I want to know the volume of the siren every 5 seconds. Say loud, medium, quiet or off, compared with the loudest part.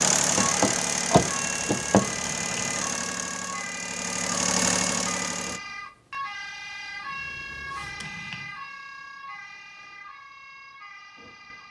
loud, loud, medium.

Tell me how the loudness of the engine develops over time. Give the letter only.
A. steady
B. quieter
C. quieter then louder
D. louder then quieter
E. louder
C.